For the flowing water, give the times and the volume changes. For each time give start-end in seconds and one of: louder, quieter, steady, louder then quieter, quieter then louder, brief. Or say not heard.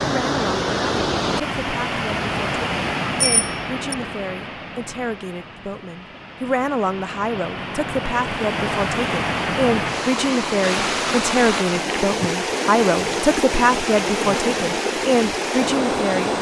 0.0-16.3 quieter then louder.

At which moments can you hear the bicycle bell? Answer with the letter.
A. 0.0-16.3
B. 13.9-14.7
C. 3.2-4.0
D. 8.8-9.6
C.